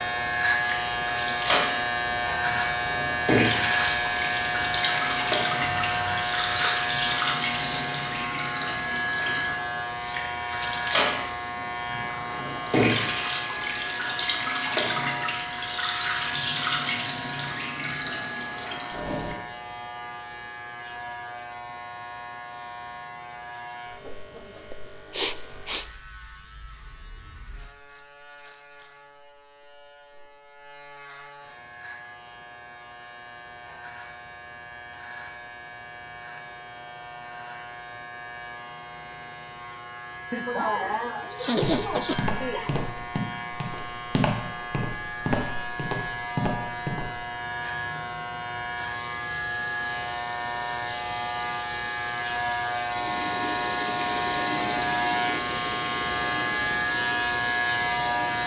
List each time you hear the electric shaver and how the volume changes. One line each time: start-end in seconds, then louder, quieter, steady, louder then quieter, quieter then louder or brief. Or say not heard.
0.0-58.4 quieter then louder.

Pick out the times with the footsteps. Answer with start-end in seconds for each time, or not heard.
41.5-47.2.